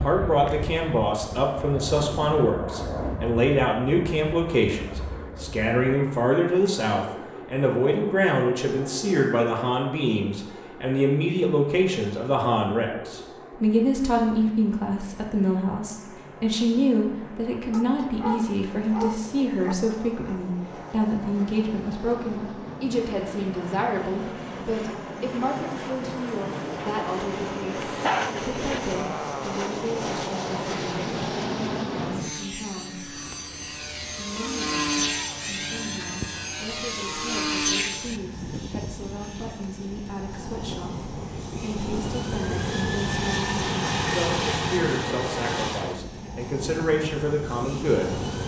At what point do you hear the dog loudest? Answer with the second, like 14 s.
28 s.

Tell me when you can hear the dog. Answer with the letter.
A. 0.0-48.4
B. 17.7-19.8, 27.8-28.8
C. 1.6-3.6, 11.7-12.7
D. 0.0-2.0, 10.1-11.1
B.